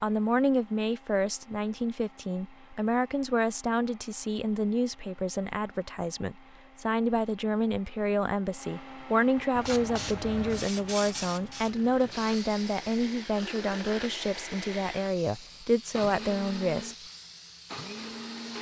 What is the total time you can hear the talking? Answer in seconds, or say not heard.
17 s.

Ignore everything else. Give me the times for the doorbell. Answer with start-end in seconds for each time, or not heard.
not heard.